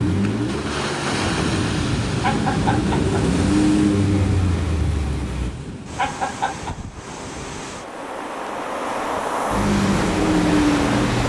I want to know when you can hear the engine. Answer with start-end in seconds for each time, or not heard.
0.0-5.5, 9.4-11.2.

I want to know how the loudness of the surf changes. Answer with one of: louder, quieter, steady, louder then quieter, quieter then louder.
quieter then louder.